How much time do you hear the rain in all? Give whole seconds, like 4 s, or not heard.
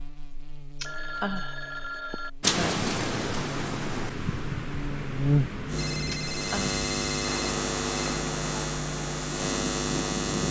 8 s.